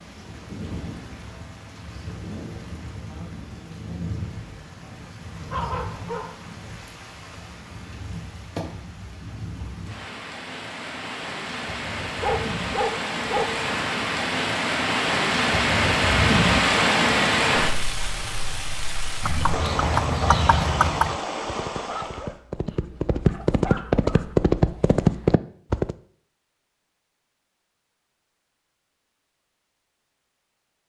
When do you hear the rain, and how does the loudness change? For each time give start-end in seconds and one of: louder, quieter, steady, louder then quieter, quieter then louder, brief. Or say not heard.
0.0-22.4 louder then quieter.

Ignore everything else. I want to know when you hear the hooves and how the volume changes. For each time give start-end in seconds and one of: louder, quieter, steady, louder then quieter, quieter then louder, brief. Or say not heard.
19.2-25.9 quieter then louder.